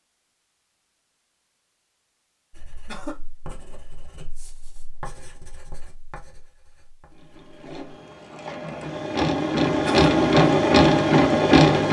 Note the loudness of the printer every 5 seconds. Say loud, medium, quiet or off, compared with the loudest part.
off, medium, loud.